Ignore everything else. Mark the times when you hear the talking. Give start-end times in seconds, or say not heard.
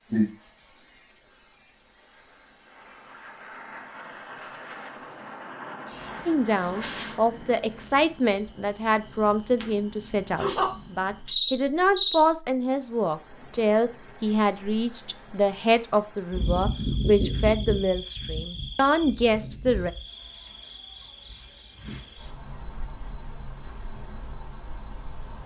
6.2-19.9.